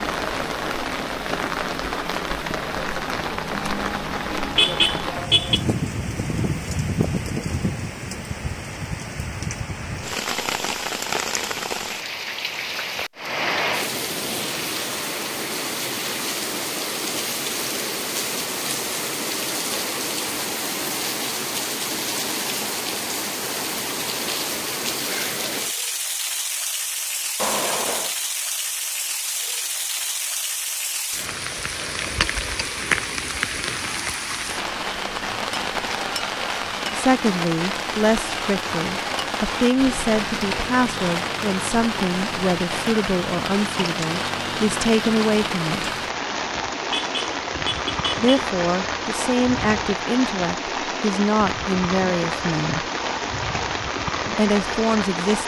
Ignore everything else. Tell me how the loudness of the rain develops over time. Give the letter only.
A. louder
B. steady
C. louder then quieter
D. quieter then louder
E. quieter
B.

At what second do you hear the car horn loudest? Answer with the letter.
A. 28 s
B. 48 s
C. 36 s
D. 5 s
D.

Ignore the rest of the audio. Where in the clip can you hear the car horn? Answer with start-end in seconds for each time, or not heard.
4.5-5.7, 27.4-28.1, 46.9-48.5.